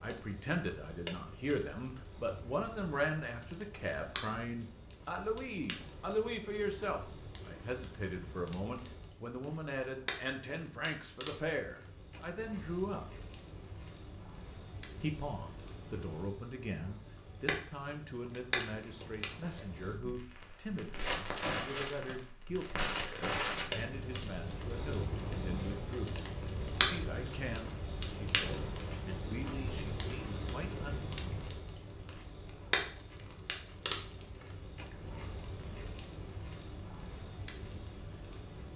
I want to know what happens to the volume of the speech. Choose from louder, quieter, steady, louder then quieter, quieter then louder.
quieter.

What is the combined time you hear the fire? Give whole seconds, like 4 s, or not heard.
39 s.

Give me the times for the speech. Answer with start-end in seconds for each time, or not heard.
0.0-13.1, 15.0-26.2, 26.9-31.0.